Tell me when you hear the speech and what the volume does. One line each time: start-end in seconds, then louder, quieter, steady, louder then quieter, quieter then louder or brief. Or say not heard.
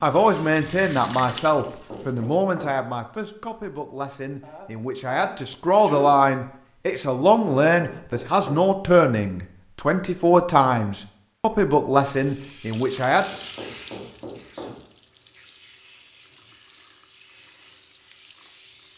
0.0-13.2 quieter then louder.